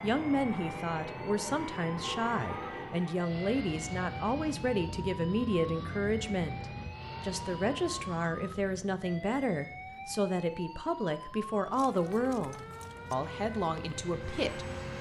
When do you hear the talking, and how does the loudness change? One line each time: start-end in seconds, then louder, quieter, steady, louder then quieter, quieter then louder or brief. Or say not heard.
0.0-14.7 steady.